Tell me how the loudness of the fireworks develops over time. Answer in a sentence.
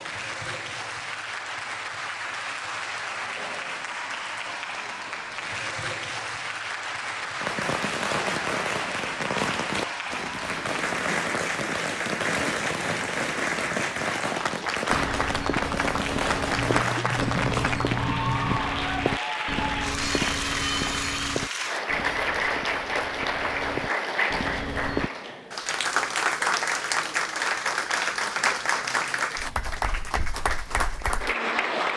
The volume of the fireworks stays about the same.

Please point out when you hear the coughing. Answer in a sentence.
You can hear the coughing from 16.6 to 18.6 s.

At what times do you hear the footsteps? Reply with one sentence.
You can hear the footsteps from 14.8 to 25.1 s.